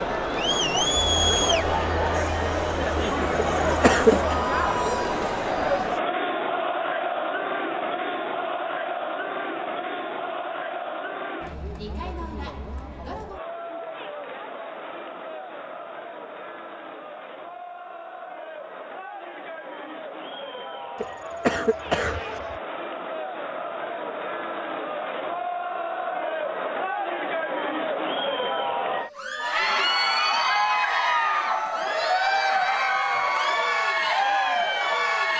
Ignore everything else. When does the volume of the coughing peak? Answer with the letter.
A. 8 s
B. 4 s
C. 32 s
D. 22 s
B.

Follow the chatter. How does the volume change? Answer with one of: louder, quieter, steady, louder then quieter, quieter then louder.
quieter then louder.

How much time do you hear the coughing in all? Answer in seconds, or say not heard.
3 s.